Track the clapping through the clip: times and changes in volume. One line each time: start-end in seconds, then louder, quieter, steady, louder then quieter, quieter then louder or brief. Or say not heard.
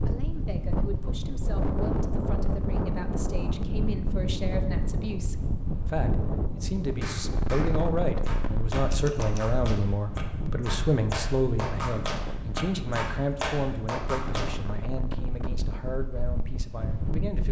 7.0-14.6 louder.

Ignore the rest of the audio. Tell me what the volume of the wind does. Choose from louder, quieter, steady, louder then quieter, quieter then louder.
quieter.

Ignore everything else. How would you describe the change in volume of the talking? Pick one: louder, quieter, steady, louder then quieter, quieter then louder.
louder then quieter.